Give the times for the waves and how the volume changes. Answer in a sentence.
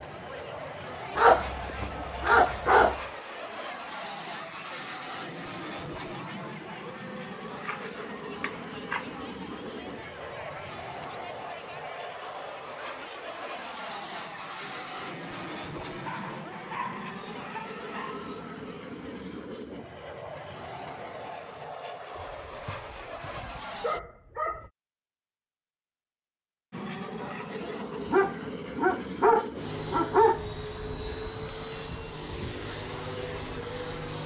You can't hear the waves here.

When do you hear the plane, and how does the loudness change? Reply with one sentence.
You can hear the plane from 0.0 to 24.0 s, at a steady volume; and from 26.7 to 34.2 s, at a steady volume.